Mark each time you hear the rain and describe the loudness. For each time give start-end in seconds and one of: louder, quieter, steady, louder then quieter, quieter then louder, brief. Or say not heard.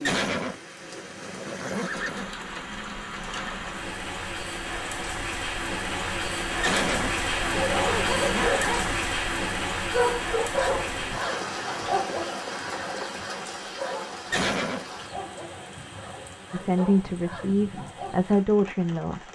0.0-19.2 louder then quieter.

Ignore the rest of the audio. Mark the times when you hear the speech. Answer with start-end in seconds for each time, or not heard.
16.5-19.2.